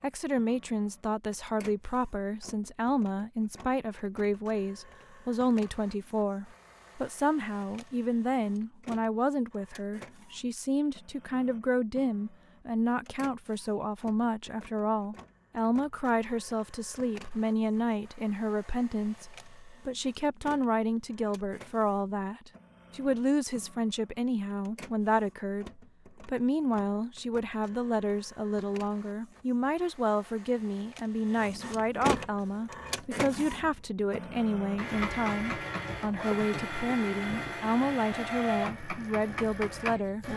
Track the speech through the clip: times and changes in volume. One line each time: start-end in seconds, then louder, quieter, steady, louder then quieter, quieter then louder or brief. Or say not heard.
0.0-40.3 steady.